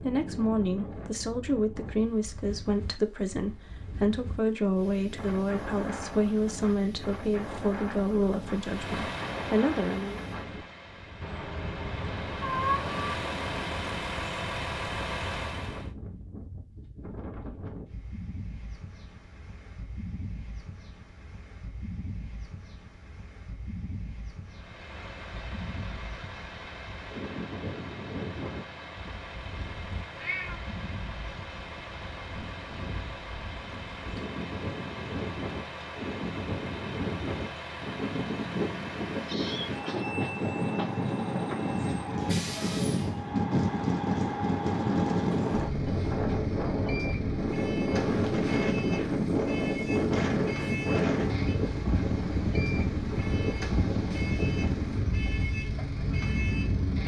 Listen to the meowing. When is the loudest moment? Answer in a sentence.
The volume of the meowing peaks at 13 seconds.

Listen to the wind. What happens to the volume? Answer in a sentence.
The volume of the wind goes up.